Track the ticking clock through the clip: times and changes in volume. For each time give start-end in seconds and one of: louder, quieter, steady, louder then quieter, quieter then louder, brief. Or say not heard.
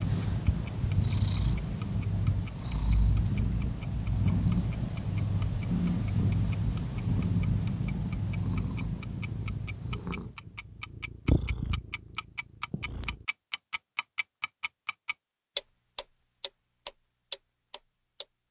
0.0-18.2 louder.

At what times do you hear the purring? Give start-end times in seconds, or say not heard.
0.0-13.2.